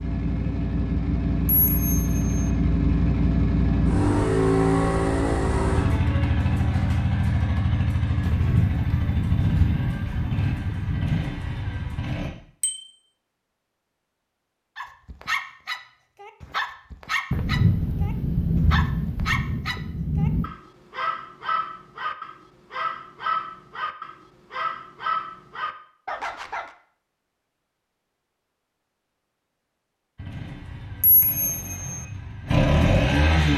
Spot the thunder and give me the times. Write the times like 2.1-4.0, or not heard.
8.2-11.3, 17.3-20.5.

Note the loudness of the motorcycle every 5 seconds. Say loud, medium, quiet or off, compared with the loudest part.
loud, loud, medium, off, off, off, loud.